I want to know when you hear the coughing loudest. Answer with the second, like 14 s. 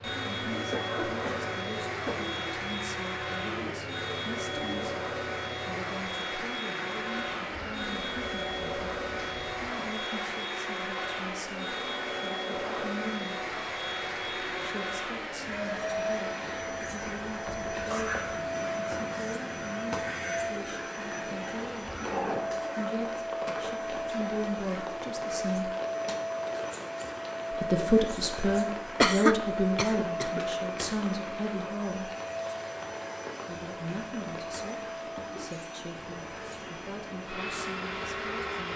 29 s.